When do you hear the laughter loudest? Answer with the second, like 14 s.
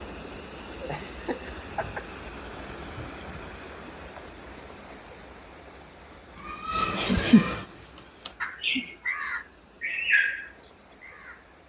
7 s.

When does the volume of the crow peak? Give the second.
10 s.